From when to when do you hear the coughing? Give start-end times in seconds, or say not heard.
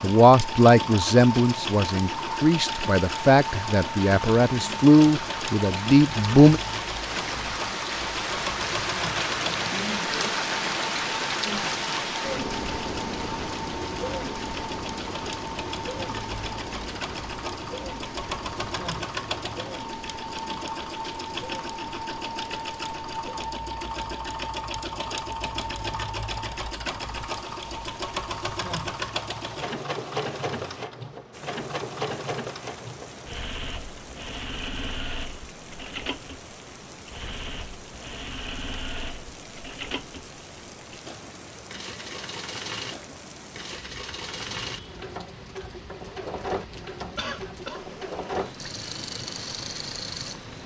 47.1-47.9.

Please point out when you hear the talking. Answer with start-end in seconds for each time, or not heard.
0.0-6.6.